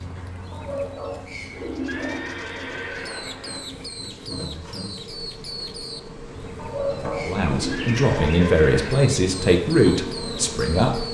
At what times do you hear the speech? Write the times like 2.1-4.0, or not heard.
7.2-11.1.